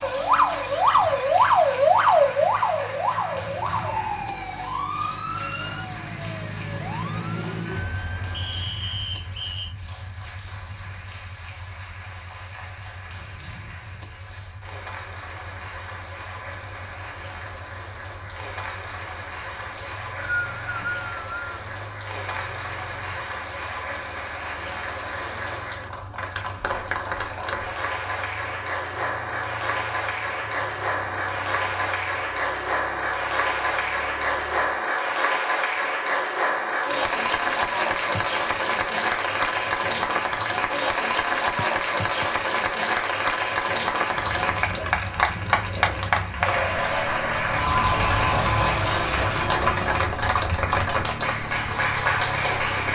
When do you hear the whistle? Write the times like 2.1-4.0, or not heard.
8.3-9.8, 19.8-21.6, 41.5-42.2.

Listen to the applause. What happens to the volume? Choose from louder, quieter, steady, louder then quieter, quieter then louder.
louder.